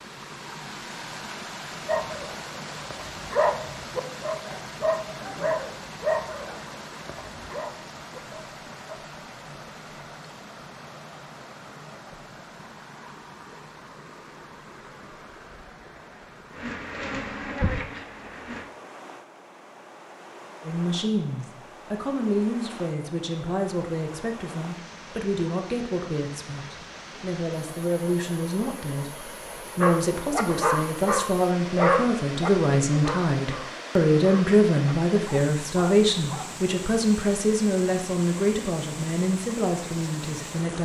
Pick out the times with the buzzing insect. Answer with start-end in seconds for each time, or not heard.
16.6-18.6.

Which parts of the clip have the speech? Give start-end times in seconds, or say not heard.
20.6-40.7.